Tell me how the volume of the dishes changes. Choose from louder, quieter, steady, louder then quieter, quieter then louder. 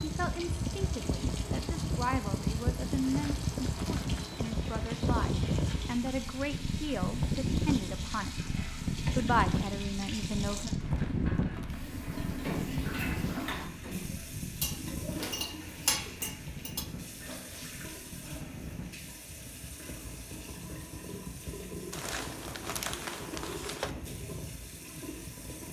louder.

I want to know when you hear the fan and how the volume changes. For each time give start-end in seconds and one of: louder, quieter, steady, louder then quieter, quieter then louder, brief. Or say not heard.
0.0-25.6 quieter.